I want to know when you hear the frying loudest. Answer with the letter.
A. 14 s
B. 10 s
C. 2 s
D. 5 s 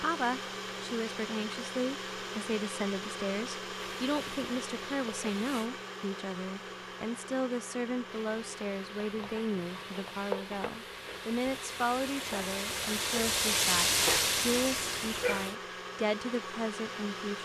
A.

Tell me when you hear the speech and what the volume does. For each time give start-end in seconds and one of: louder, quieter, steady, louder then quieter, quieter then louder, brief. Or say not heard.
0.0-17.4 steady.